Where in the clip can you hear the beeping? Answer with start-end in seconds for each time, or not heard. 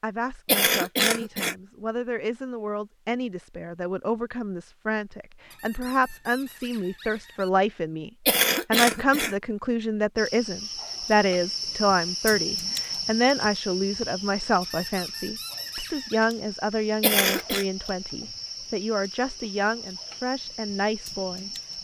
not heard.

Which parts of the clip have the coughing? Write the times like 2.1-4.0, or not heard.
0.5-1.6, 8.2-9.3, 17.0-17.6.